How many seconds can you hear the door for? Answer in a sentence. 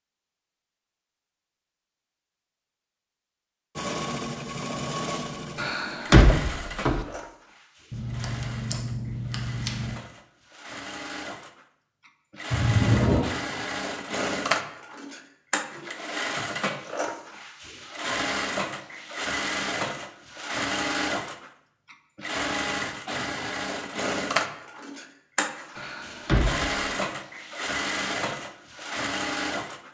You can hear the door for 3 seconds altogether.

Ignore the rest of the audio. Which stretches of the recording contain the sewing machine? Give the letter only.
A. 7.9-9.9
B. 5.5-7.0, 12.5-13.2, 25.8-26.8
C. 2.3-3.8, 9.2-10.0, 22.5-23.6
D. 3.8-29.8
D.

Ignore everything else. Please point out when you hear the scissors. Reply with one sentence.
The scissors can be heard from 7.9 to 9.9 s.